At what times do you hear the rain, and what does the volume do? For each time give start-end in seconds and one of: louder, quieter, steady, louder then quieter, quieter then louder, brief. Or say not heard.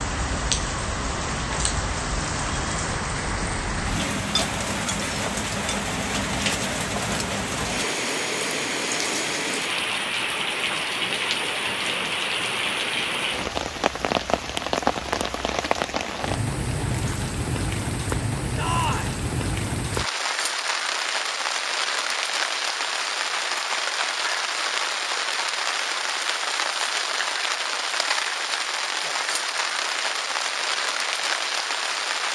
0.0-32.3 steady.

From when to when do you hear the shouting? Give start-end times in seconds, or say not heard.
18.6-19.2.